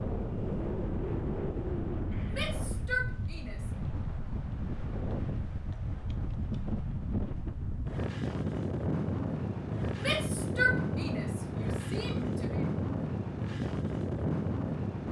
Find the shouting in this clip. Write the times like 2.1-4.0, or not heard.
2.3-3.7, 9.9-12.7.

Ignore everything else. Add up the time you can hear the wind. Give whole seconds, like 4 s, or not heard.
15 s.